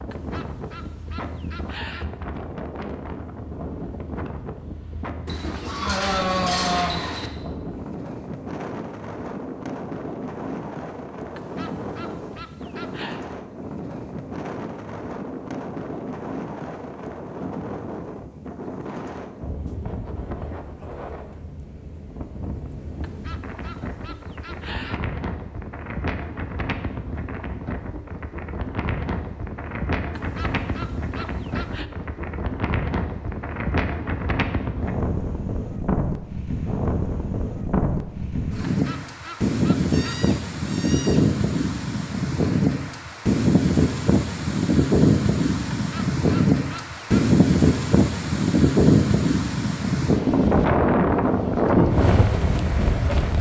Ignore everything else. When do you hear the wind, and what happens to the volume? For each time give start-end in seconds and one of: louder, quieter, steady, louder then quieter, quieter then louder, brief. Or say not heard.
0.0-53.3 louder.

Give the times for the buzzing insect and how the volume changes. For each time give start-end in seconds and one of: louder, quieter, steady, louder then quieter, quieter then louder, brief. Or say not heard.
not heard.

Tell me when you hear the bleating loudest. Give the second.
7 s.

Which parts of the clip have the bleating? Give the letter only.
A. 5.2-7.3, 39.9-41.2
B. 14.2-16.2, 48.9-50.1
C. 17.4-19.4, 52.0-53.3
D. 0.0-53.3
A.